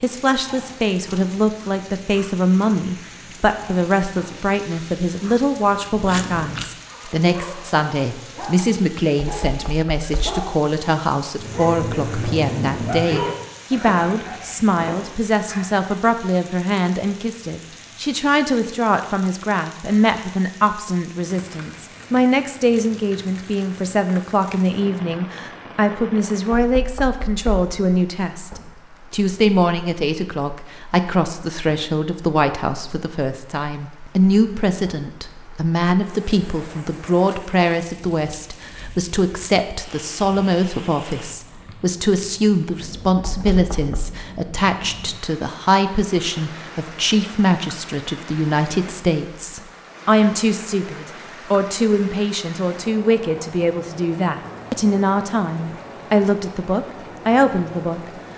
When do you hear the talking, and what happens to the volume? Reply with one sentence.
The talking can be heard from 0.0 to 58.0 s, at a steady volume.